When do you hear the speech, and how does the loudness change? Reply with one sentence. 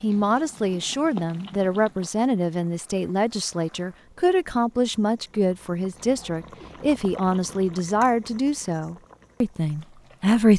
The speech can be heard from 0.0 to 10.5 s, at a steady volume.